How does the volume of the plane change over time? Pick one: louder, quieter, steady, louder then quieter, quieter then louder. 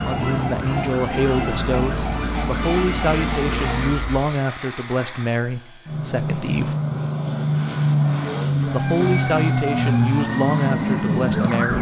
louder.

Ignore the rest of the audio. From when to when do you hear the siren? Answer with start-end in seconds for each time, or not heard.
0.0-4.3, 8.7-11.7.